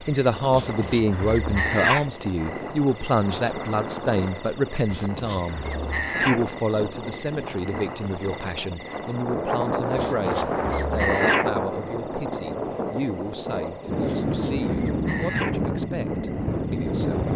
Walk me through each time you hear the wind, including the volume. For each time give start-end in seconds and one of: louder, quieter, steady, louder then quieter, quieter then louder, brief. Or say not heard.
0.0-17.3 louder.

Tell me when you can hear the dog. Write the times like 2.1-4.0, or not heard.
0.5-2.1, 4.9-6.5, 9.9-11.5, 14.1-15.6.